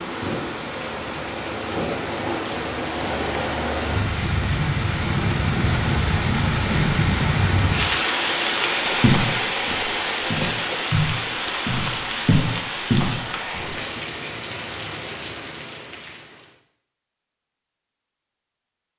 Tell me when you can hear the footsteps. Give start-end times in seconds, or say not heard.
9.0-13.8.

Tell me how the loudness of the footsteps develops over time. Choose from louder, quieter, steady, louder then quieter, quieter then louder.
louder.